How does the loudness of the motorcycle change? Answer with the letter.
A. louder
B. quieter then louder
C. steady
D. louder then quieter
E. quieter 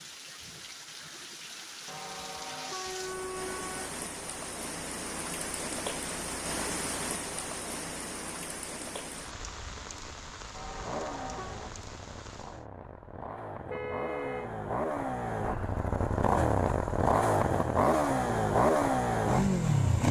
A.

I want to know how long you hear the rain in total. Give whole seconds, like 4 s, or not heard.
13 s.